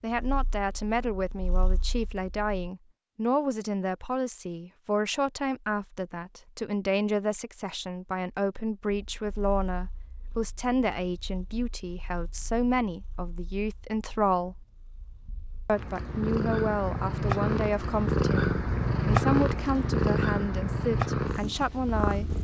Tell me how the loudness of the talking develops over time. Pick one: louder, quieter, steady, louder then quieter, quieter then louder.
steady.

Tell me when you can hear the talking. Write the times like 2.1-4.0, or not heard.
0.0-14.7, 15.7-22.2.